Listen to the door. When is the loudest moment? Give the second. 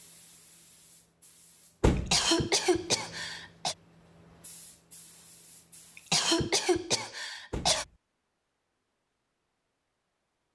2 s.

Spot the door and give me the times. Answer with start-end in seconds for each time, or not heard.
1.8-2.2, 7.5-7.9.